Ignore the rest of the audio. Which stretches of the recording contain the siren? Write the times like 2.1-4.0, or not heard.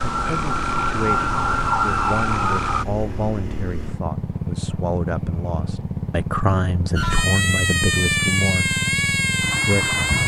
0.0-2.9, 7.0-10.2.